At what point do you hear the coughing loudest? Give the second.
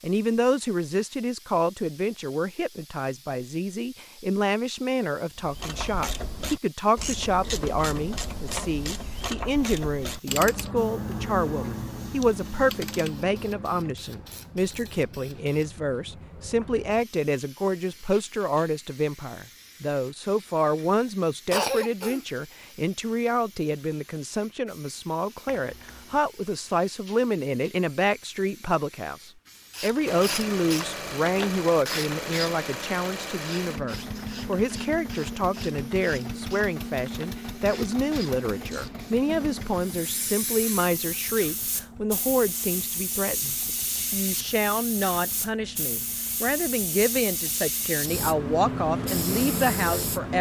22 s.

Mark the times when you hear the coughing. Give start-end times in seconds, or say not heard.
21.5-22.2, 25.4-26.2.